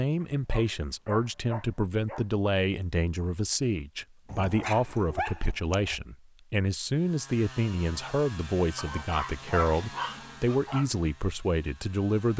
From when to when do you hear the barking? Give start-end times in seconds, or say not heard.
0.2-2.2, 4.2-6.0, 8.8-10.8.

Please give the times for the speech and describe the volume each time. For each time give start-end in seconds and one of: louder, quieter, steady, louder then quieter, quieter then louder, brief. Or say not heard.
0.0-12.3 steady.